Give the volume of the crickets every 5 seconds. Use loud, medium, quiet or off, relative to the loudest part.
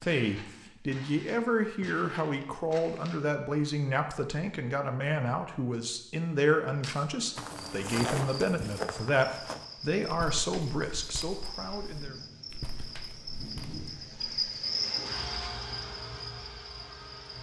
off, medium, loud, loud.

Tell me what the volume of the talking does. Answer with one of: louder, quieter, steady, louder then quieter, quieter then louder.
steady.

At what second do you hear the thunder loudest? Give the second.
14 s.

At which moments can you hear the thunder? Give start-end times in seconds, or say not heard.
11.8-14.2.